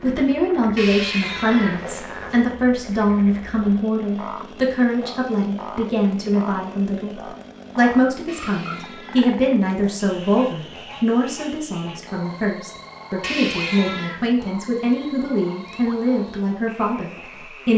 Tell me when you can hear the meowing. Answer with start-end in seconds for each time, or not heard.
0.8-2.5, 8.2-9.3, 13.2-14.2.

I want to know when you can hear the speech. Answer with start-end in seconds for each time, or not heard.
0.0-17.7.